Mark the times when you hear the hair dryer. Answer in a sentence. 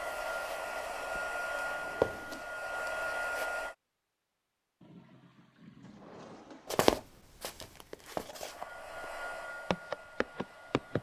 The hair dryer can be heard from 0.0 to 3.8 s and from 8.4 to 10.9 s.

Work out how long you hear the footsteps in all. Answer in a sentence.
You can hear the footsteps for 7 seconds altogether.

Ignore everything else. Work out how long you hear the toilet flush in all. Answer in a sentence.
You can hear the toilet flush for 2 seconds altogether.